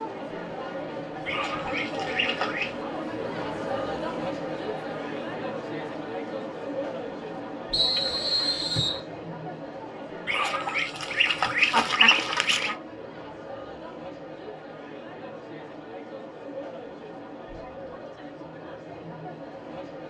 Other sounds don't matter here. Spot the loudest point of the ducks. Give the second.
12 s.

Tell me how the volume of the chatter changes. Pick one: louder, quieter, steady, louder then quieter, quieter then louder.
quieter.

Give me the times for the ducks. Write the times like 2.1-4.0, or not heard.
1.2-2.8, 10.2-12.8.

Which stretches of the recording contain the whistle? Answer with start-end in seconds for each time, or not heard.
7.7-9.0.